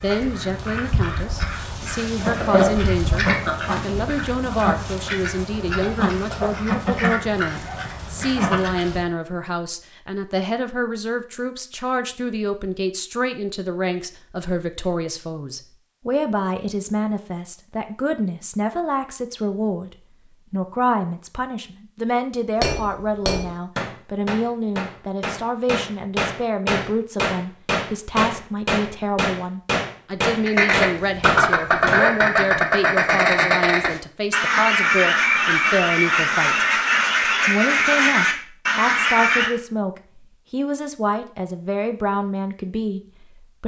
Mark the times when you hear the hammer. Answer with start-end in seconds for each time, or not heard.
22.6-32.1.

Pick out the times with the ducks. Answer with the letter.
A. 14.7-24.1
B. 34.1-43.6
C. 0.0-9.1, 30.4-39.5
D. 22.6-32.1
C.